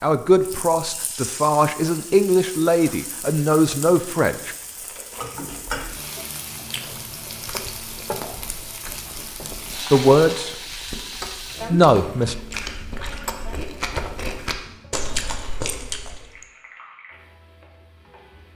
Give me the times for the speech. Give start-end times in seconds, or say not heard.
0.0-4.5, 9.9-10.5, 11.7-12.3.